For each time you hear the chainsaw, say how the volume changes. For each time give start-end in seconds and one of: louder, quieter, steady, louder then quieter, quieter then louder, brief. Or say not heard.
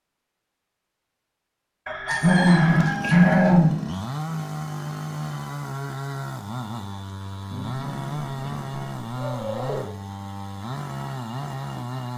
2.6-12.1 steady.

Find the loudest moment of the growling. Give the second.
3 s.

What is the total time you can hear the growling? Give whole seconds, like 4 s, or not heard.
4 s.